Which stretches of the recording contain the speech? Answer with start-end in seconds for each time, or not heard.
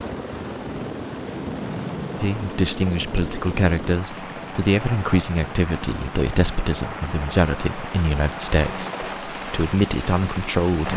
2.2-10.9.